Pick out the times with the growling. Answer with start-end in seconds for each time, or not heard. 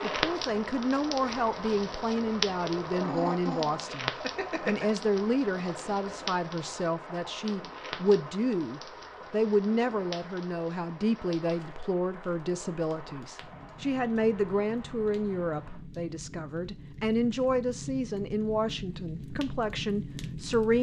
3.0-4.8.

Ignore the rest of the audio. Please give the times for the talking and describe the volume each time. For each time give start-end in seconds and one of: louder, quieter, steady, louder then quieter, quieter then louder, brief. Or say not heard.
0.0-20.7 steady.